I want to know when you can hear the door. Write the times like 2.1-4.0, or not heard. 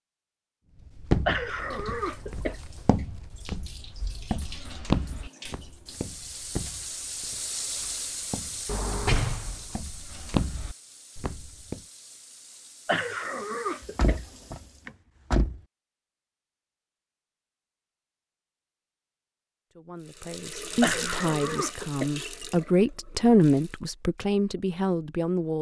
8.7-9.7, 13.8-15.6.